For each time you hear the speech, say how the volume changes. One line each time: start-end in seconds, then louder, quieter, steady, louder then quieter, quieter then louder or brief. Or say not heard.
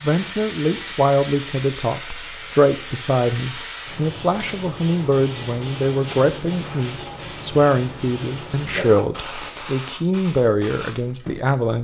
0.0-11.7 steady.